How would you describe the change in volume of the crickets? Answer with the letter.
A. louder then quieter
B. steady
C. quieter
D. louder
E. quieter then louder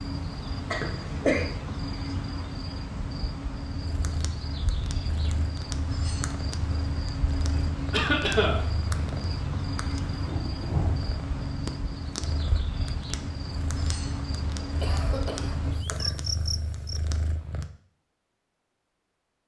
B.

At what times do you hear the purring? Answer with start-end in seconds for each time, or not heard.
3.8-17.7.